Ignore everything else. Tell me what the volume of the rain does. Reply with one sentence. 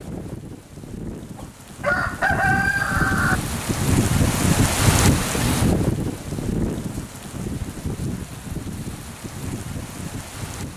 The volume of the rain goes up, then down.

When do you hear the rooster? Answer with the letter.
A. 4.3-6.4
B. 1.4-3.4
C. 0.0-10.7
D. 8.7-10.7
B.